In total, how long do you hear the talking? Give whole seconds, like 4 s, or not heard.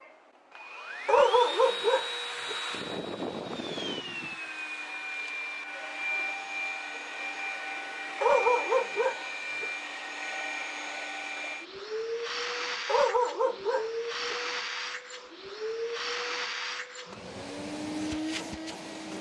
not heard.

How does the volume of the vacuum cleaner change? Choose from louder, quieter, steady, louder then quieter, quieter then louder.
steady.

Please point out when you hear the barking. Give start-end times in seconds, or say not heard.
1.1-2.5, 8.2-9.7, 12.8-14.3.